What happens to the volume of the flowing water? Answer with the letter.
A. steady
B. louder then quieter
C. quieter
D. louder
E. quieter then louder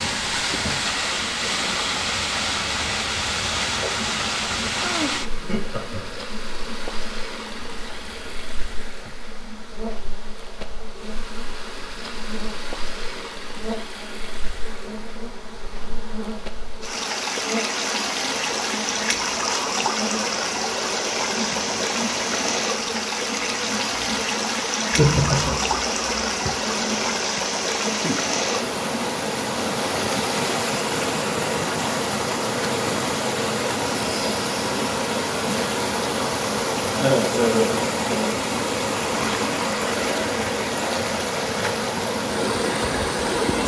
E.